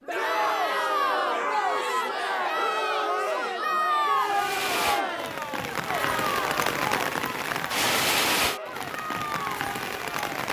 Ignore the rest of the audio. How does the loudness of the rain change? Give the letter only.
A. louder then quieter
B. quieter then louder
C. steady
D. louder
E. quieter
A.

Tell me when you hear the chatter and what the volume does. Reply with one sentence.
The chatter can be heard from 0.1 to 10.3 s, getting quieter.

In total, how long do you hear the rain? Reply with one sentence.
You can hear the rain for 6 seconds altogether.